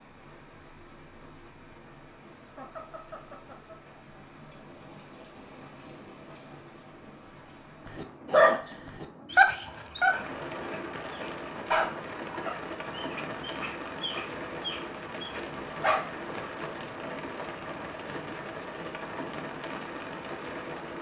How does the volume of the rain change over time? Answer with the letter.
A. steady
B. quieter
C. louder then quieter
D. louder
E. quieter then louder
D.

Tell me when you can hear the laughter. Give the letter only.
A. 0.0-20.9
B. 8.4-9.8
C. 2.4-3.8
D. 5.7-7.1
C.